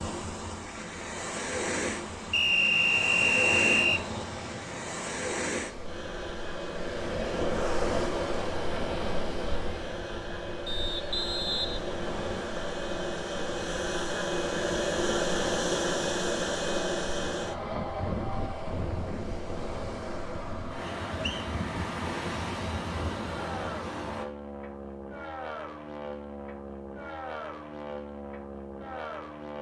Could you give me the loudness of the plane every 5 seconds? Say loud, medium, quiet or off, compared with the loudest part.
medium, medium, loud, loud, medium, medium.